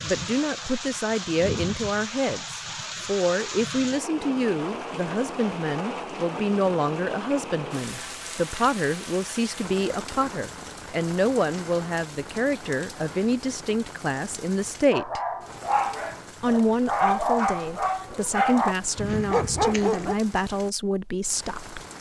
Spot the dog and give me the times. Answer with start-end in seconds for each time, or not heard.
14.9-20.1.